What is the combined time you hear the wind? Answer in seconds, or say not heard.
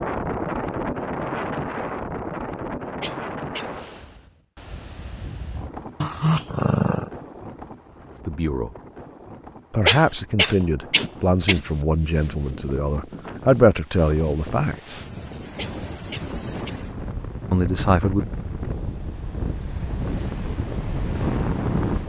22 s.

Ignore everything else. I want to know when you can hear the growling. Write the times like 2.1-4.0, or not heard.
6.0-7.1.